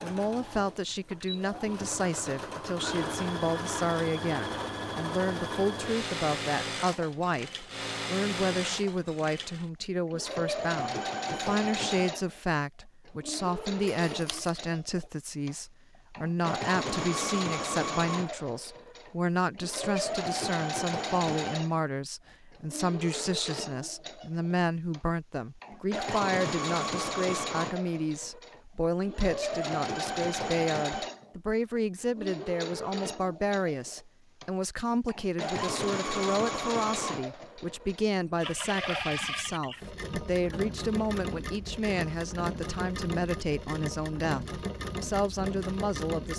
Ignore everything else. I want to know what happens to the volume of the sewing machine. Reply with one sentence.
The volume of the sewing machine stays about the same.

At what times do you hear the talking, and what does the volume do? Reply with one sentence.
The talking can be heard from 0.0 to 46.3 s, at a steady volume.